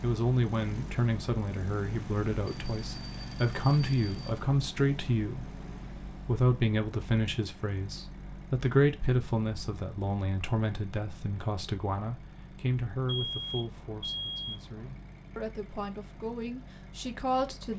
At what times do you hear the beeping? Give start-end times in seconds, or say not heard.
2.5-4.5, 13.1-14.9.